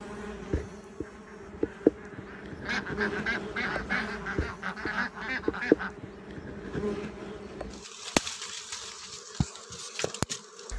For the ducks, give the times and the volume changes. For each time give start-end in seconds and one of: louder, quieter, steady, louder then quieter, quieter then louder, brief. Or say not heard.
1.0-6.0 louder.